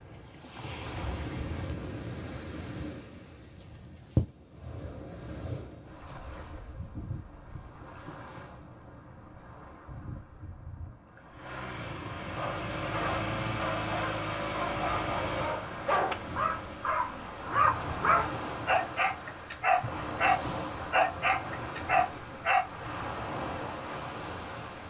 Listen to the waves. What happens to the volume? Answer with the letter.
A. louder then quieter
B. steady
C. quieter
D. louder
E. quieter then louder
E.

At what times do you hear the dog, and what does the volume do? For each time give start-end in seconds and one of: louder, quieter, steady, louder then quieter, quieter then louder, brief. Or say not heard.
12.3-22.6 louder.